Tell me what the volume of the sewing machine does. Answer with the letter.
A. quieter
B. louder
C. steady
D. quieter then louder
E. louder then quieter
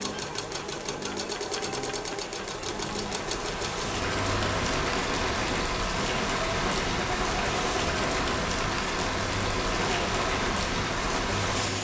C.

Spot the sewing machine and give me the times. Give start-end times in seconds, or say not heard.
0.0-11.7.